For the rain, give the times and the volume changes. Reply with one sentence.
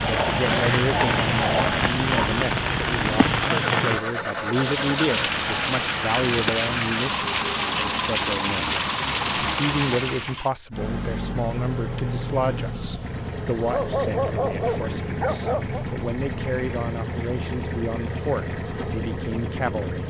You can hear the rain from 0.0 to 10.4 s, at a steady volume.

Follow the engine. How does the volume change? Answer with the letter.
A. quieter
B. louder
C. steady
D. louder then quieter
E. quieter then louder
C.